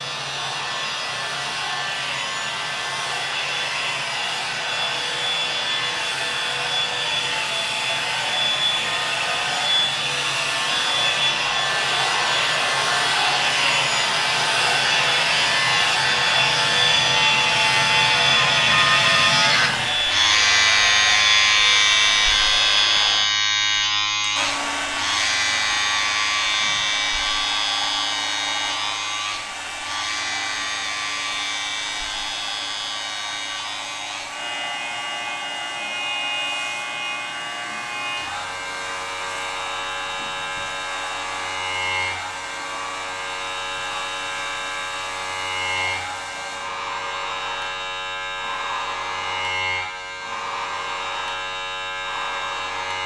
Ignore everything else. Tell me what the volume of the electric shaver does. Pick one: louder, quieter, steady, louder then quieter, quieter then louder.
louder then quieter.